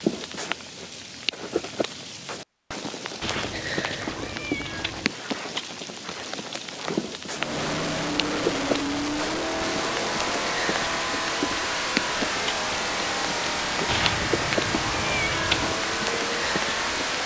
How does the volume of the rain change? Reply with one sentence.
The loudness of the rain stays about the same.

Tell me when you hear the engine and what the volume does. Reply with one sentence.
The engine can be heard from 7.3 to 17.2 s, at a steady volume.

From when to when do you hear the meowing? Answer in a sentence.
You can hear the meowing from 3.2 to 5.2 s and from 13.8 to 15.8 s.